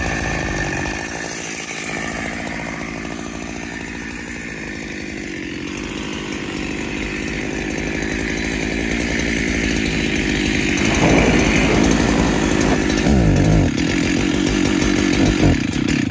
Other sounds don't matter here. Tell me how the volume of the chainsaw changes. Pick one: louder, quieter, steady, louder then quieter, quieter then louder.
louder.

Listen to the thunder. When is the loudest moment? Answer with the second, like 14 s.
11 s.